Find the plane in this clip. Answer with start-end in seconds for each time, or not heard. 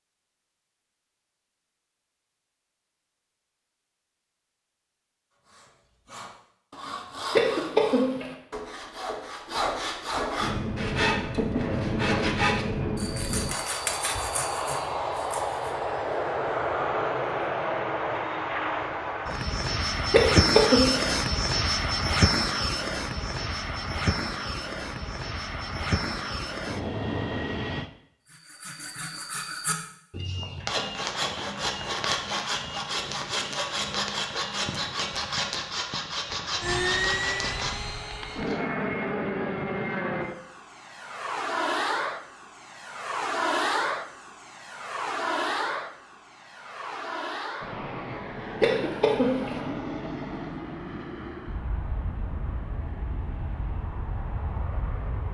10.3-27.9, 36.6-55.2.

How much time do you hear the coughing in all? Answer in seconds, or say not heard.
3 s.